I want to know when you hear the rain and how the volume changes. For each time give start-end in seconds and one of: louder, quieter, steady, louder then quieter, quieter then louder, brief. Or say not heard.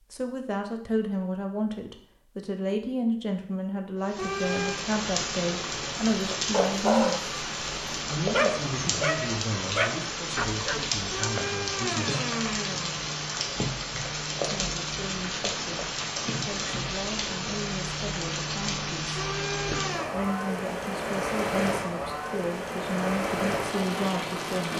4.0-24.7 steady.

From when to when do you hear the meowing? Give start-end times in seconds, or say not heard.
4.2-4.8, 11.1-13.1, 19.1-20.1.